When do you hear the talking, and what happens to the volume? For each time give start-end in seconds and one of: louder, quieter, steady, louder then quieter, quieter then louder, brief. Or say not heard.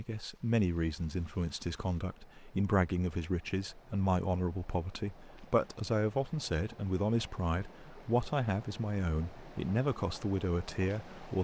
0.0-11.3 steady.